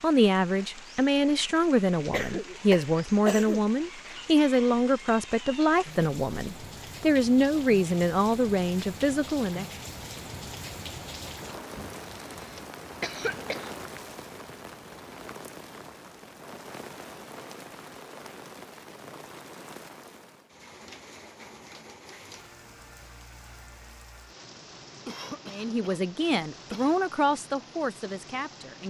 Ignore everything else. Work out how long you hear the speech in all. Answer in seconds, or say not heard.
13 s.